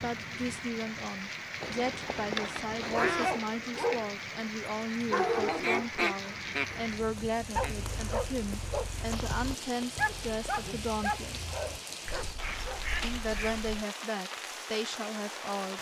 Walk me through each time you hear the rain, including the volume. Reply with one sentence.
The rain can be heard from 0.0 to 15.7 s, at a steady volume.